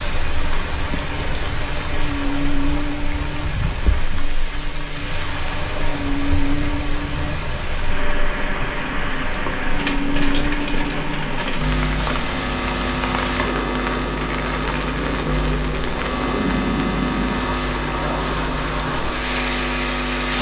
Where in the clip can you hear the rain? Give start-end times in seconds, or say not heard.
0.0-20.3.